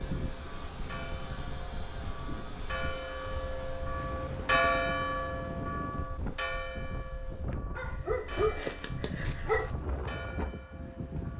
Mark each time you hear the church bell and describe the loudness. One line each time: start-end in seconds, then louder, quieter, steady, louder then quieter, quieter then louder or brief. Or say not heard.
0.0-11.3 louder then quieter.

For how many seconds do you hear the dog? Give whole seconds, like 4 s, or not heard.
2 s.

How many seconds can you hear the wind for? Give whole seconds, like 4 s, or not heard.
11 s.